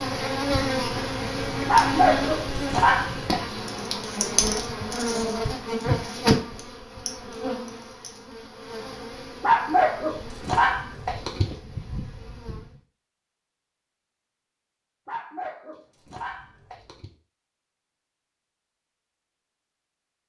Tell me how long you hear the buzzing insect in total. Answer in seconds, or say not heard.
13 s.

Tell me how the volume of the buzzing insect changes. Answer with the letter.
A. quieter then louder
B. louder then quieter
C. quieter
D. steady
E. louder
C.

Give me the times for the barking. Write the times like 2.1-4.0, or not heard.
1.6-3.5, 9.4-11.6, 15.1-17.1.